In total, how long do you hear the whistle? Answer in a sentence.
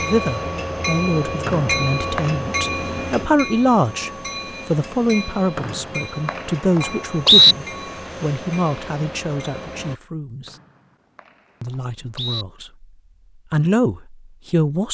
You can hear the whistle for 5 seconds altogether.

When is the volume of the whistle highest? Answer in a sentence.
The loudest moment of the whistle is at 7 seconds.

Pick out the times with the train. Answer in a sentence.
You can hear the train from 0.0 to 9.9 s.